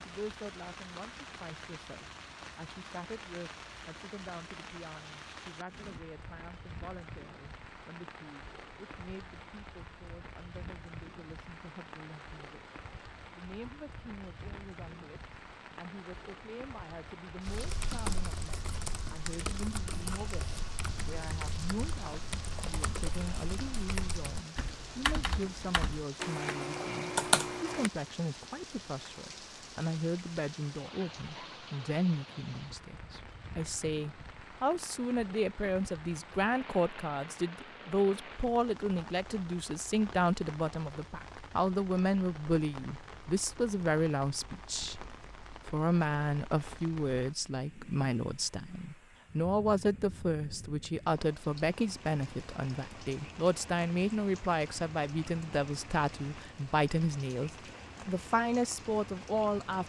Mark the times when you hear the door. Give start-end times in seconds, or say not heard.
not heard.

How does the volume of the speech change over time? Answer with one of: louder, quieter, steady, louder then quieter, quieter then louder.
louder.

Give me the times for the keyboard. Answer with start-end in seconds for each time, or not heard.
17.4-27.9.